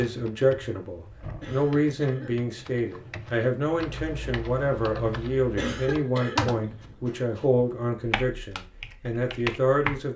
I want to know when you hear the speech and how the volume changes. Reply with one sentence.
The speech can be heard from 0.0 to 10.1 s, at a steady volume.